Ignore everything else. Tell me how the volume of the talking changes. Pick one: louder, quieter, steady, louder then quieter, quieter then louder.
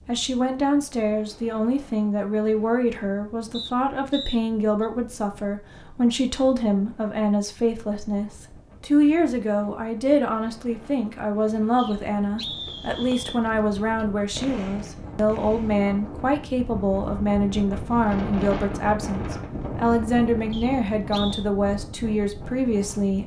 steady.